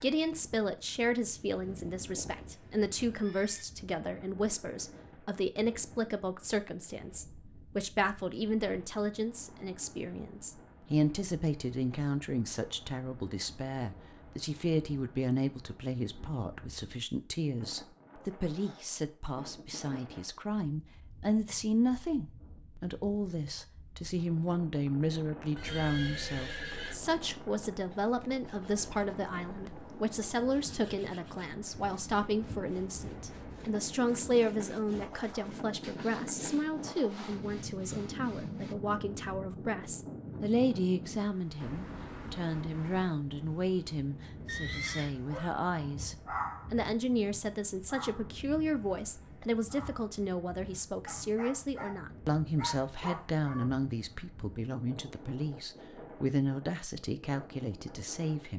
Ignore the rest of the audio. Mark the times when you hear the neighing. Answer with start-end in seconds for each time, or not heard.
1.6-3.6, 25.6-27.0, 44.5-45.1.